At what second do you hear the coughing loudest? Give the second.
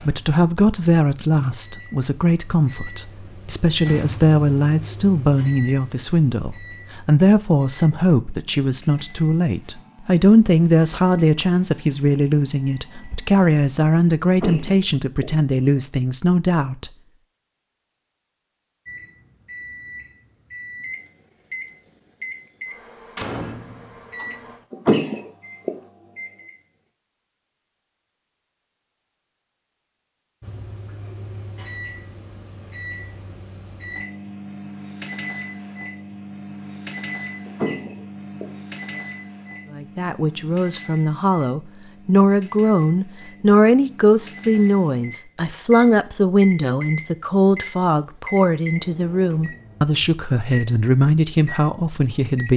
25 s.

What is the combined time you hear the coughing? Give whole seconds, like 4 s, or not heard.
4 s.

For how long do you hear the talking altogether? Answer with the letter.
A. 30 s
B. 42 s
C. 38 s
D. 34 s
A.